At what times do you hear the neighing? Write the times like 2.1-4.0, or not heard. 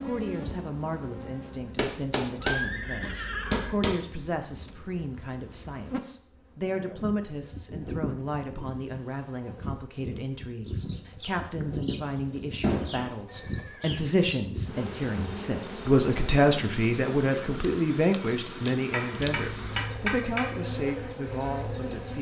2.4-3.8, 13.2-14.0.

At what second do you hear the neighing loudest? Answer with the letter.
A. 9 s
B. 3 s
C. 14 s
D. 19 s
B.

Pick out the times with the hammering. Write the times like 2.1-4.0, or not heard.
1.8-4.0, 12.6-13.1, 18.9-20.6.